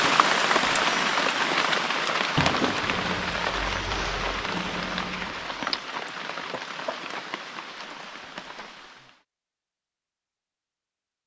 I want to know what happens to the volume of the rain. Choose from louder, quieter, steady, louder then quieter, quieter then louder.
quieter.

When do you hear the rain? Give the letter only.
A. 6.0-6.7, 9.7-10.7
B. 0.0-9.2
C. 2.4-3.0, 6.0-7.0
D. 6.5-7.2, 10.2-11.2
B.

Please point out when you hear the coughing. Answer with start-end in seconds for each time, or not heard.
2.4-3.0, 6.0-7.0.